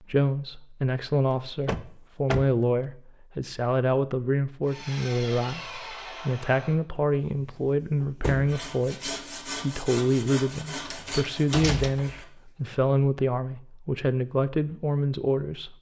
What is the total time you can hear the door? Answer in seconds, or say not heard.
3 s.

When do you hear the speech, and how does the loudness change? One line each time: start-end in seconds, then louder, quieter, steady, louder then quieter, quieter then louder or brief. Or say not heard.
0.0-15.7 steady.